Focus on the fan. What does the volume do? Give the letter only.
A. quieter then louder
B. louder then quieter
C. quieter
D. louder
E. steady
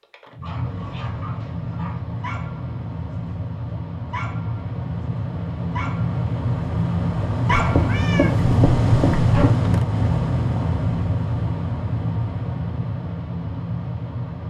B.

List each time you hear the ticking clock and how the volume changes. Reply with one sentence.
You can't hear the ticking clock here.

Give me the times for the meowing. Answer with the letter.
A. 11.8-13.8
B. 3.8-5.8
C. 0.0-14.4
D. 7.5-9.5
D.